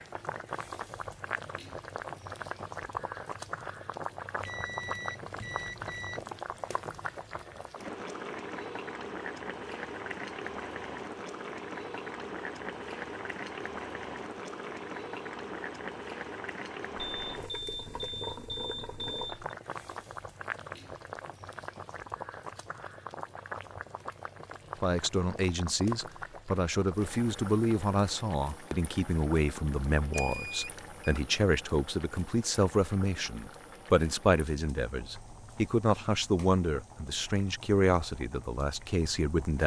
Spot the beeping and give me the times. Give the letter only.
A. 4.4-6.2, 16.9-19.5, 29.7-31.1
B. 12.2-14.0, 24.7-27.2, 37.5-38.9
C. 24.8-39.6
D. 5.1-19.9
A.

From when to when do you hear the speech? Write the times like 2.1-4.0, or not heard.
24.8-39.6.